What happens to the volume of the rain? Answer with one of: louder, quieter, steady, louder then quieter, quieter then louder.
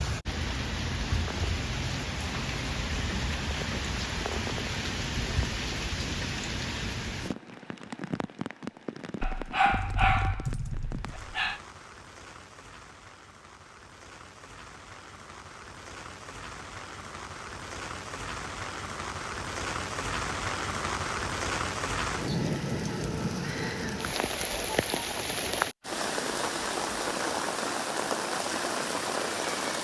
quieter then louder.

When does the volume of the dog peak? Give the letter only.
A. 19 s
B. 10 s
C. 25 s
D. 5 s
B.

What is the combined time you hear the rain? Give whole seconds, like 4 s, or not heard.
30 s.